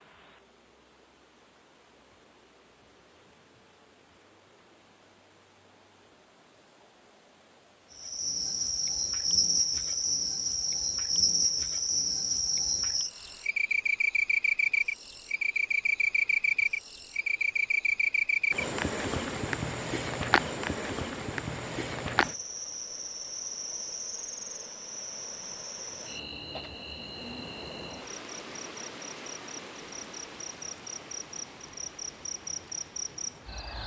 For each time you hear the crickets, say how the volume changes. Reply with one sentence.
The crickets can be heard from 7.9 to 33.8 s, getting quieter.